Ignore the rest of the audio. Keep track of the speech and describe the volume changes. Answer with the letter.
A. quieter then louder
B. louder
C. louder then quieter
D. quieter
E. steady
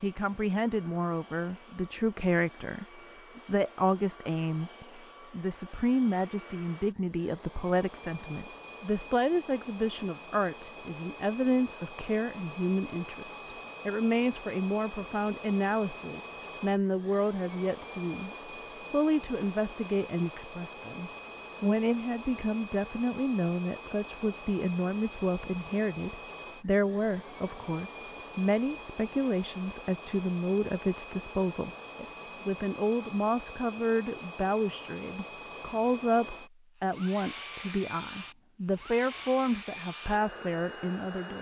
E.